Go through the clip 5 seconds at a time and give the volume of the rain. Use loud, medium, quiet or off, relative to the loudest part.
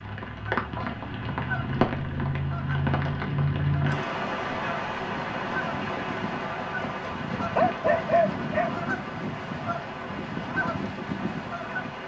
loud, medium, medium.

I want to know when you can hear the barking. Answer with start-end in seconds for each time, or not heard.
7.0-8.8.